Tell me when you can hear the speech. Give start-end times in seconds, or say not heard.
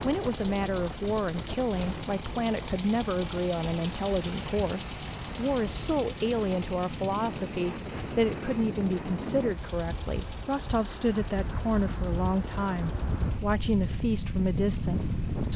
0.0-15.5.